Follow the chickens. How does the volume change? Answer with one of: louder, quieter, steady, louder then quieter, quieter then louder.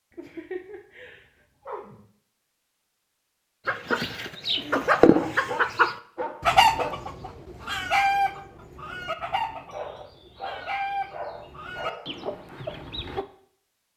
quieter.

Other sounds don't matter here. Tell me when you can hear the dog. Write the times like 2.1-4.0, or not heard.
0.1-2.0, 5.0-7.0, 9.7-12.2.